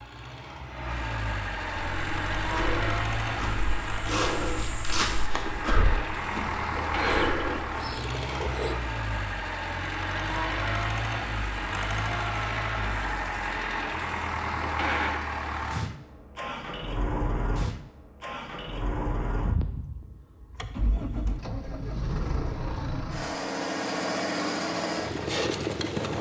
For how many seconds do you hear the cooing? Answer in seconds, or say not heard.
2 s.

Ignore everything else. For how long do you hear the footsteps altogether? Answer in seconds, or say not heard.
6 s.